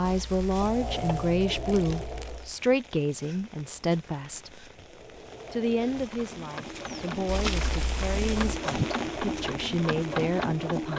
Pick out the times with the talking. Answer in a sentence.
The talking can be heard from 0.0 to 4.6 s and from 5.5 to 10.9 s.